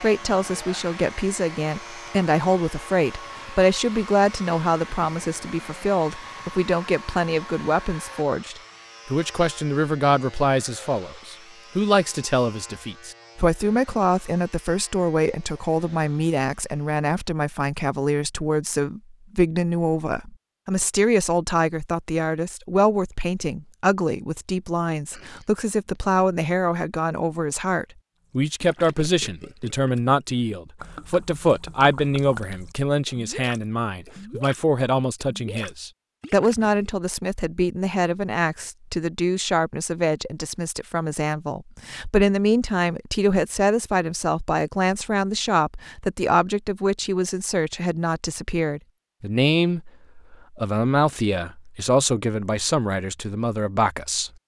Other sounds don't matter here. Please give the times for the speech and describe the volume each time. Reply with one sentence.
You can hear the speech from 0.0 to 54.3 s, at a steady volume.